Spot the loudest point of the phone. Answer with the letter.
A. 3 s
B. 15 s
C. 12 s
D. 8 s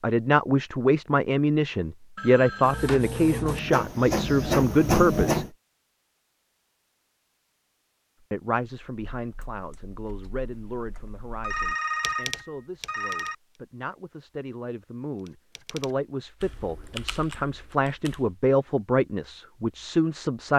C.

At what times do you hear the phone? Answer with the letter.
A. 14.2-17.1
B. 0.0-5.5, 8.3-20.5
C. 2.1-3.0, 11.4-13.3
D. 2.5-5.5
C.